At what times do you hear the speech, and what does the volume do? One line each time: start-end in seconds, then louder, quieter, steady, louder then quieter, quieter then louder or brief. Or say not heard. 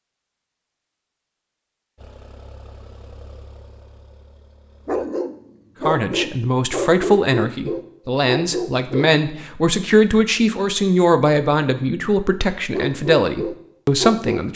5.8-14.5 steady.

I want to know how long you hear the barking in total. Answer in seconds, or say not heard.
6 s.